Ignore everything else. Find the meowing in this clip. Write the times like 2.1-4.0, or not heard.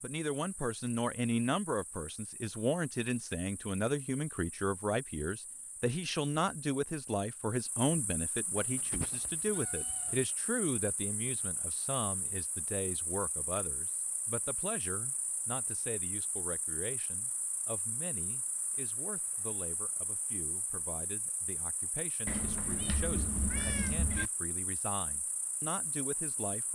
8.6-10.2, 22.2-24.3.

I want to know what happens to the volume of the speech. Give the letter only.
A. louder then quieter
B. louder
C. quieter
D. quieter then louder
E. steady
C.